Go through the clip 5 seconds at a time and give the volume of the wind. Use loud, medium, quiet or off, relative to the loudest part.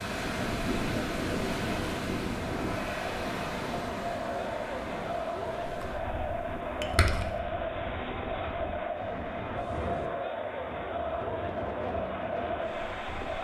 loud, medium, medium.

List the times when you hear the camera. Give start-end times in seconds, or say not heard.
5.8-7.4.